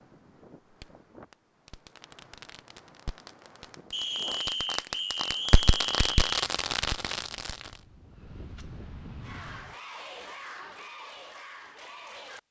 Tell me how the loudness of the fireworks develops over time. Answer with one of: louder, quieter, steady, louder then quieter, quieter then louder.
louder.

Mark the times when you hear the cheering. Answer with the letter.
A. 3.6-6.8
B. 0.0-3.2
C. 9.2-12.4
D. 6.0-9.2
C.